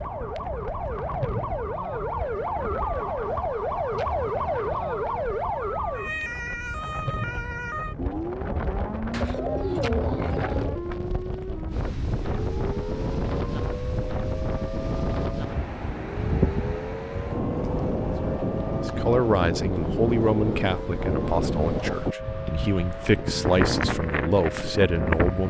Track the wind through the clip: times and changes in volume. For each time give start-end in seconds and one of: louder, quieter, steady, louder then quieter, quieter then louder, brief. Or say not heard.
0.0-25.4 louder.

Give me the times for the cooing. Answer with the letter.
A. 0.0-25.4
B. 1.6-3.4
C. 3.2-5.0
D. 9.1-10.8
D.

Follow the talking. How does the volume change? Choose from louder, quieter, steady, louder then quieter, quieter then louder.
quieter then louder.